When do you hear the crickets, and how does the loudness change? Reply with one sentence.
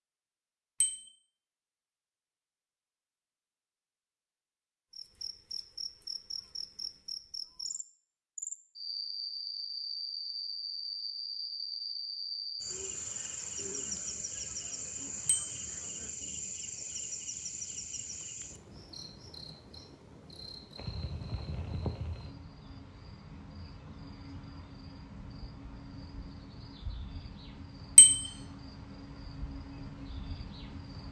The crickets can be heard from 4.9 to 31.0 s, getting quieter.